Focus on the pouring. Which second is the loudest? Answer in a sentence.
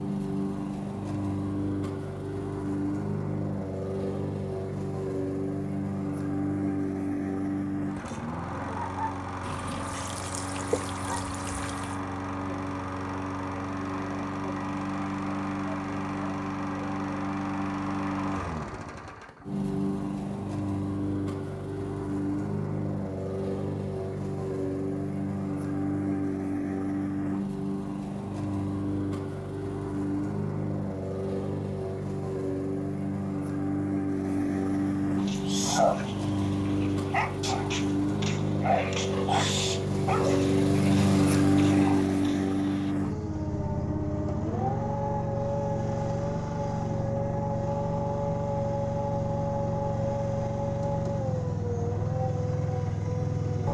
The loudest moment of the pouring is at 11 seconds.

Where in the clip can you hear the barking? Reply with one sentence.
You can hear the barking from 35.1 to 42.9 s.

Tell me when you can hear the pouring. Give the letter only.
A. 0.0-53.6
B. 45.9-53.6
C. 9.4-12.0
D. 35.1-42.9
C.